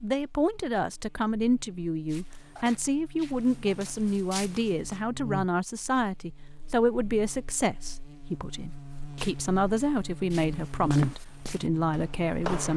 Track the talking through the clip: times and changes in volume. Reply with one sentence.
The talking can be heard from 0.0 to 12.7 s, at a steady volume.